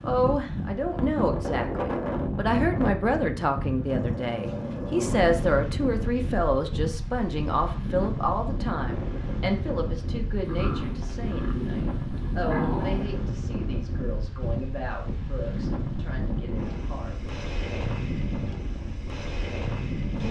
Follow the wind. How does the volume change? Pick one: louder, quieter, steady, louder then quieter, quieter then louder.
steady.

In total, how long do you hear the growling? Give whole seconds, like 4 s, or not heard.
4 s.